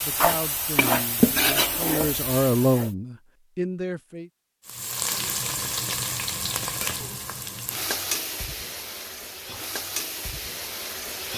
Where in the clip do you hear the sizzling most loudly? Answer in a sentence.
The loudest moment of the sizzling is at 1 second.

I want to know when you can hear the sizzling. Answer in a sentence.
You can hear the sizzling from 0.0 to 2.9 s and from 4.7 to 11.3 s.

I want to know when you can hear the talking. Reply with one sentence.
The talking can be heard from 0.0 to 4.3 s.